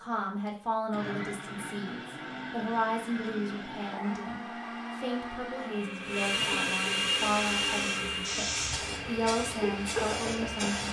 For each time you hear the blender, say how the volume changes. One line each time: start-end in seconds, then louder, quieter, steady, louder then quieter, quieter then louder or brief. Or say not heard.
0.0-10.8 louder then quieter.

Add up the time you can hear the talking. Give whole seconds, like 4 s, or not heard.
11 s.